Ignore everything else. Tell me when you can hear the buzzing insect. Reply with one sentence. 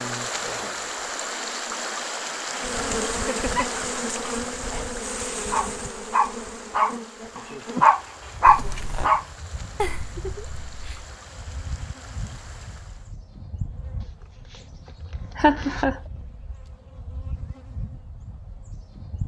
You can hear the buzzing insect from 0.0 to 19.2 s.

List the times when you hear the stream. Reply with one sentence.
The stream can be heard from 0.0 to 13.2 s.